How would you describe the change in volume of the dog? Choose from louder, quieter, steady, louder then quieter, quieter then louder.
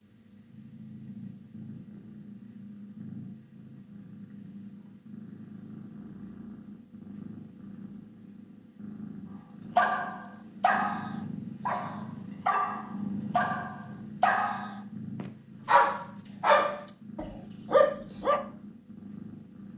louder.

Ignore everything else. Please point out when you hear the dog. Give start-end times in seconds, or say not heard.
9.8-18.4.